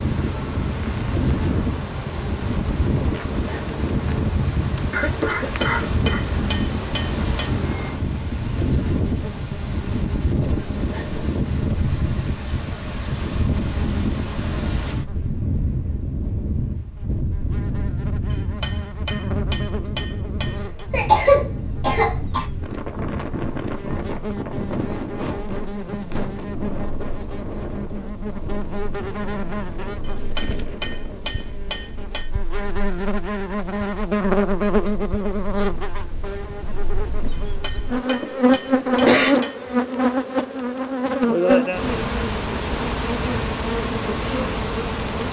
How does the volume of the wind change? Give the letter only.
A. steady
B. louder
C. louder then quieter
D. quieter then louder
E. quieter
E.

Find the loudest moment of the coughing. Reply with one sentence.
The loudest moment of the coughing is at 21 seconds.